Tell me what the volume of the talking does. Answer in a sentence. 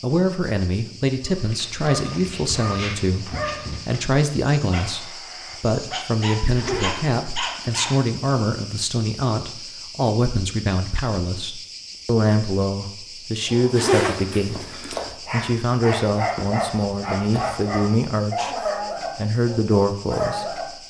The volume of the talking stays about the same.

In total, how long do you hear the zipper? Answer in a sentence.
You can hear the zipper for 3 seconds altogether.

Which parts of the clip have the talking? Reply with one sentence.
The talking can be heard from 0.0 to 20.6 s.